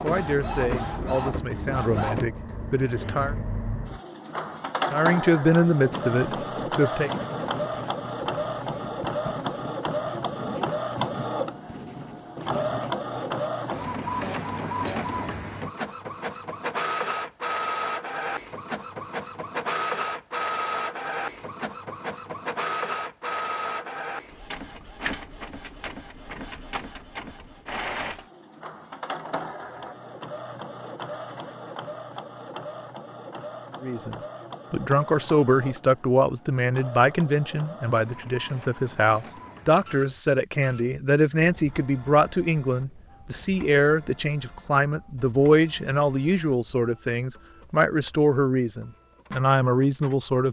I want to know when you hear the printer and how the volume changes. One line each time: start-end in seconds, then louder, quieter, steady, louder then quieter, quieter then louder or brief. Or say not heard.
0.0-50.3 quieter.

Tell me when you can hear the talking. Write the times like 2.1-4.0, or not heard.
0.0-3.4, 4.9-7.1, 33.8-50.4.